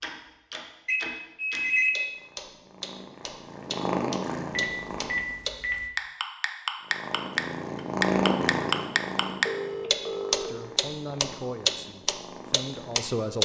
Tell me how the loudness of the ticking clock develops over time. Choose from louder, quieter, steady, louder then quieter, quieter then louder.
louder.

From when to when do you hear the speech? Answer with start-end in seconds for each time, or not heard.
10.4-13.4.